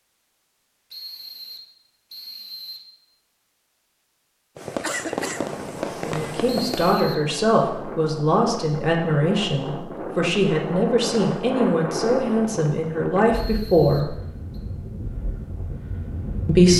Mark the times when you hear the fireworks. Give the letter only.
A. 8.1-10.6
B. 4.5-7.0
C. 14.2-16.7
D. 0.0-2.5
B.